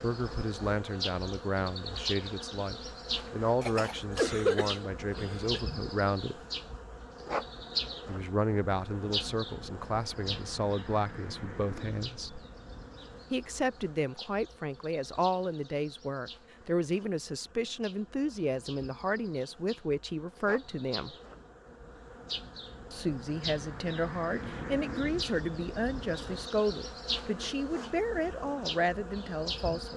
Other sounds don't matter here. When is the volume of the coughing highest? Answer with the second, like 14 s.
4 s.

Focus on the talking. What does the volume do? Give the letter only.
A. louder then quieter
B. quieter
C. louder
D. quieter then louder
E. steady
E.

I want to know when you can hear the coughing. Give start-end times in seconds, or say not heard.
3.6-5.6.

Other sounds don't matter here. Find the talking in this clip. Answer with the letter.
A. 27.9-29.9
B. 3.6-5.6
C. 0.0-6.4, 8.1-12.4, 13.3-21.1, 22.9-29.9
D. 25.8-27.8
C.